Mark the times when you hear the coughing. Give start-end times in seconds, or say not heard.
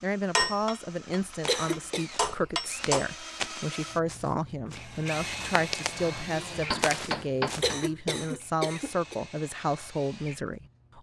1.4-2.1, 7.6-9.2.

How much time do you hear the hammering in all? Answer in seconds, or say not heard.
5 s.